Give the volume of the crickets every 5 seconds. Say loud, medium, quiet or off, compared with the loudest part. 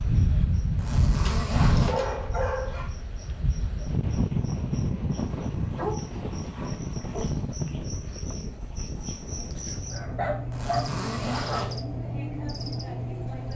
quiet, medium, loud.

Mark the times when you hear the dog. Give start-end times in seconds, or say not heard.
1.2-2.9, 5.3-7.3, 9.9-11.7.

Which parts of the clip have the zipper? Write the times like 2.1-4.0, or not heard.
0.8-1.9, 10.5-11.8.